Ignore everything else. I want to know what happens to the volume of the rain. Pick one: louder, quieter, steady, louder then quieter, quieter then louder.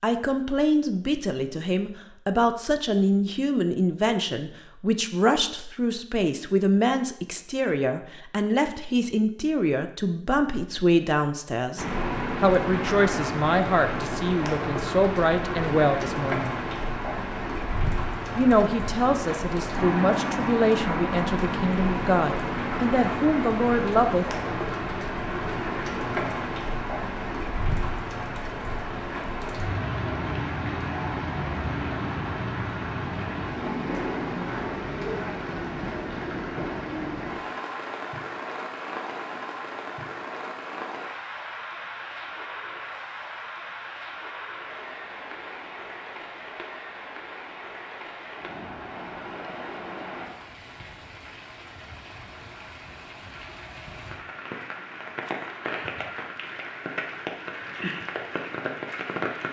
quieter.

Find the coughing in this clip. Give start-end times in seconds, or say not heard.
not heard.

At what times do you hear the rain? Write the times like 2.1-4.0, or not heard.
11.8-59.4.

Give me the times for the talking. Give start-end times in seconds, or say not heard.
0.0-16.6, 18.4-24.2.